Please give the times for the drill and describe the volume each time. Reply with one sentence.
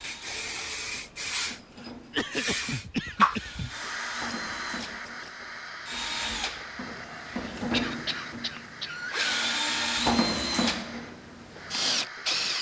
You can hear the drill from 0.0 to 12.5 s, getting louder.